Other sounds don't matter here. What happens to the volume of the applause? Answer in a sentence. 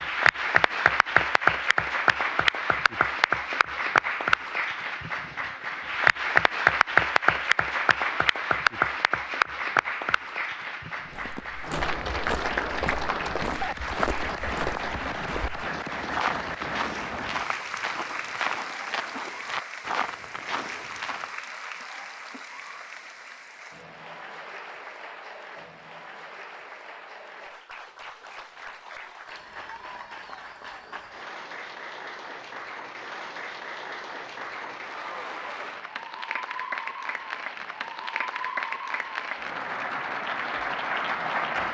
The volume of the applause goes down, then up.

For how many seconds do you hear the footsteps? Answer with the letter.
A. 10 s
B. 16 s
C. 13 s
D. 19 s
A.